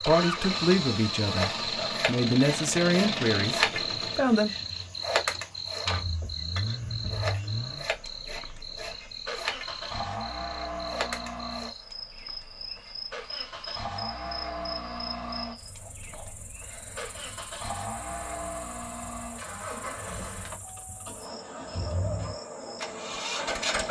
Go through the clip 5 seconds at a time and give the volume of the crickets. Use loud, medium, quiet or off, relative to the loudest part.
loud, loud, medium, quiet, medium.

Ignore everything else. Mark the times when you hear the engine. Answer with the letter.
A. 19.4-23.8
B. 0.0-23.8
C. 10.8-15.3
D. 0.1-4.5
B.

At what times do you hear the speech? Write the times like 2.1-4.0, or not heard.
0.1-4.5.